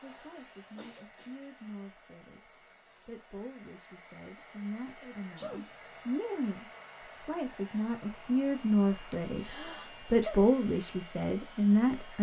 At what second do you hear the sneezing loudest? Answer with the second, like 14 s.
10 s.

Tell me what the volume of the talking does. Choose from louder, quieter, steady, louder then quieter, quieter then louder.
louder.